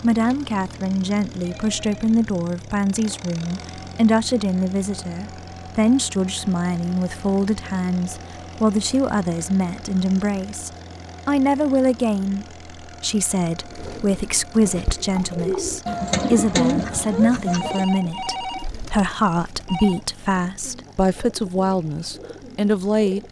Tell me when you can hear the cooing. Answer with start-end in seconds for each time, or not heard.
13.6-23.2.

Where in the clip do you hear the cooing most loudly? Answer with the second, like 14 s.
17 s.